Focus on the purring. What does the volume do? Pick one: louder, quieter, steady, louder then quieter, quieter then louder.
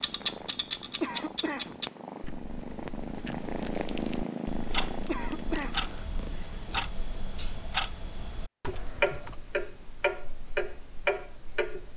louder then quieter.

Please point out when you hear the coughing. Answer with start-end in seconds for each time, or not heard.
1.0-1.8, 5.0-5.8, 8.7-9.4.